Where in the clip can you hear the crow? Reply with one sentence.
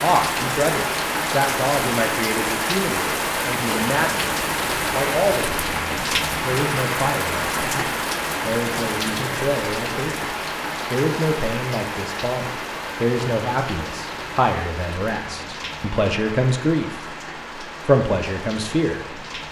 You can't hear the crow here.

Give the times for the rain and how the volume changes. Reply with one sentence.
You can hear the rain from 0.0 to 19.4 s, getting quieter.